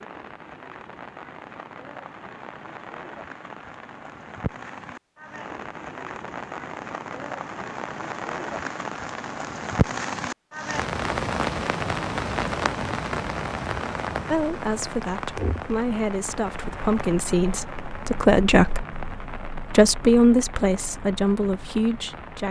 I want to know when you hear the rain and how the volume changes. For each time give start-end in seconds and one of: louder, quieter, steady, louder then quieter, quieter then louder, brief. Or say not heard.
0.0-22.4 louder then quieter.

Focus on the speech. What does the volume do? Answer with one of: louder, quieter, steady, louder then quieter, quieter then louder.
louder then quieter.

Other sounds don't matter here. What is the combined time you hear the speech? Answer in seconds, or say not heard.
8 s.